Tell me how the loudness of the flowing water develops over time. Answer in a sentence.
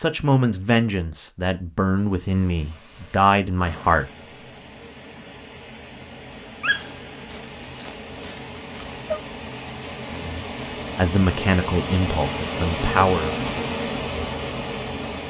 The loudness of the flowing water goes up.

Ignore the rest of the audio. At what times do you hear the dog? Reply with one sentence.
You can hear the dog from 6.6 to 9.2 s.